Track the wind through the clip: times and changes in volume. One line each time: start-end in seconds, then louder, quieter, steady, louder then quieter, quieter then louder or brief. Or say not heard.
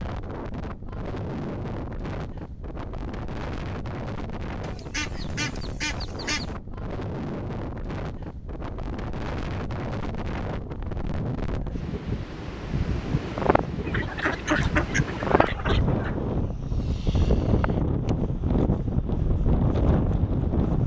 0.0-20.8 louder.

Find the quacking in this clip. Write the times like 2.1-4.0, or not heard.
4.6-6.5, 13.8-16.1.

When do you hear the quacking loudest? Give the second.
15 s.